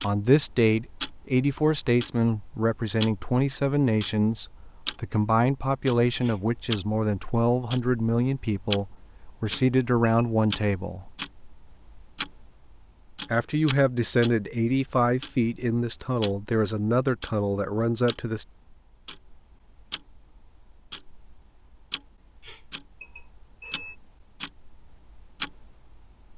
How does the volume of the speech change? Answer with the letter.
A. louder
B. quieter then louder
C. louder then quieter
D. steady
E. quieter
D.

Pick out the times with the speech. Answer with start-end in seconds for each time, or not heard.
0.0-11.1, 13.3-18.4.